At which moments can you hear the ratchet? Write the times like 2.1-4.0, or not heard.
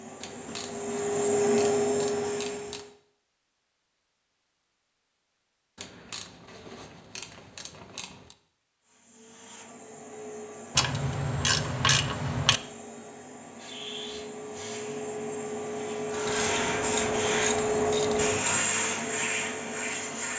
0.2-2.9, 5.8-8.3, 10.8-12.6, 16.2-18.6.